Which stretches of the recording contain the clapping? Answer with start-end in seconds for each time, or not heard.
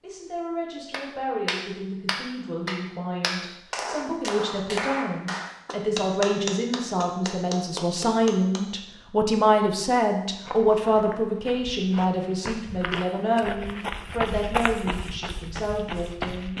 0.9-8.7.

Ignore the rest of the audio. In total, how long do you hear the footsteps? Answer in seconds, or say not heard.
6 s.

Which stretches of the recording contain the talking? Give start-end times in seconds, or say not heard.
0.0-16.5.